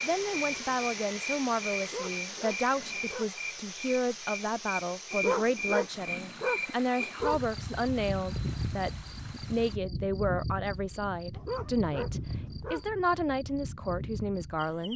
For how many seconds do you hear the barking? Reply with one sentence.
The barking can be heard for 5 seconds in total.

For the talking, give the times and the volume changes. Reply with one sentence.
The talking can be heard from 0.0 to 14.9 s, at a steady volume.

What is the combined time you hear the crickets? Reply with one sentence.
You can hear the crickets for 15 seconds altogether.